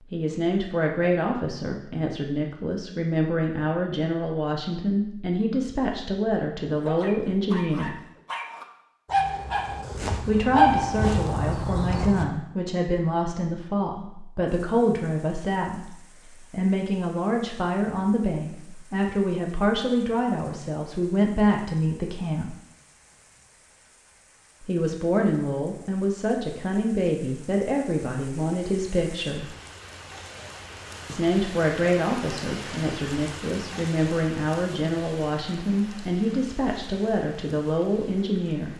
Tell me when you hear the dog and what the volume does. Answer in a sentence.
You can hear the dog from 6.7 to 12.2 s, getting louder then quieter.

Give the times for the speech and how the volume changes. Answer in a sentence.
The speech can be heard from 0.1 to 8.0 s, at a steady volume; from 10.2 to 22.6 s, at a steady volume; from 24.6 to 29.6 s, at a steady volume; and from 31.1 to 38.7 s, at a steady volume.